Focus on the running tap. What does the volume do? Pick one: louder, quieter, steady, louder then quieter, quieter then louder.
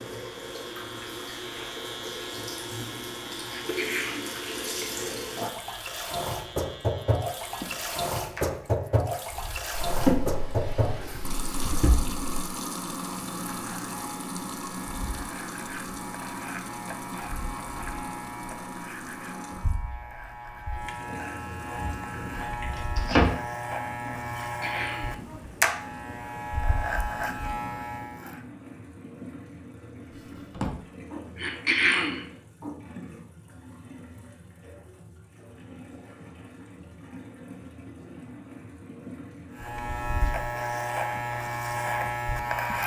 quieter.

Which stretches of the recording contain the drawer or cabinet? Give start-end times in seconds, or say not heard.
9.8-12.2, 21.8-23.3, 30.1-30.8.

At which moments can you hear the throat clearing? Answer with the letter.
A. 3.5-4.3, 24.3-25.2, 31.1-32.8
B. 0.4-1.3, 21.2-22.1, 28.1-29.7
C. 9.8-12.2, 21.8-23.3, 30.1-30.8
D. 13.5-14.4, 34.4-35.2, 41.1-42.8
A.